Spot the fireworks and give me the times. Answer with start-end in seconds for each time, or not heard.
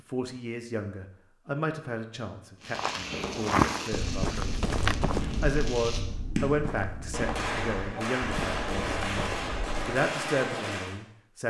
2.6-11.0.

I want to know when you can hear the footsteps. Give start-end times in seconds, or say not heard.
2.7-9.8.